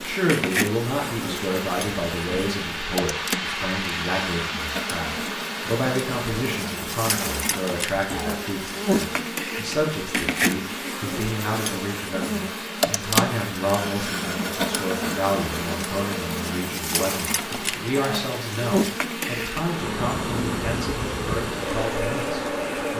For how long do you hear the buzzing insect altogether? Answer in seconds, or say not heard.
23 s.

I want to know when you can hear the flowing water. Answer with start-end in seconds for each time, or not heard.
0.0-22.9.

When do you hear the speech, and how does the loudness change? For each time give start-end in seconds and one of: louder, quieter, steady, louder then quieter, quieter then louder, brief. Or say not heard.
0.0-22.9 steady.